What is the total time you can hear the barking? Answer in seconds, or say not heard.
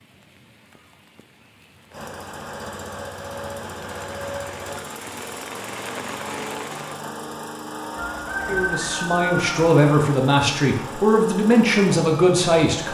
not heard.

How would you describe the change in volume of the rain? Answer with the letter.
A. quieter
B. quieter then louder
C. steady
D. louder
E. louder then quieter
D.